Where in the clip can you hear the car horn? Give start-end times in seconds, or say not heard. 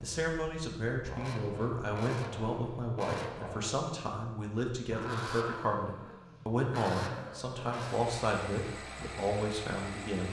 not heard.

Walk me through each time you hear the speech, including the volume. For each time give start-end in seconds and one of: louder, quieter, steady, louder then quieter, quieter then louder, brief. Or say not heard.
0.0-10.2 steady.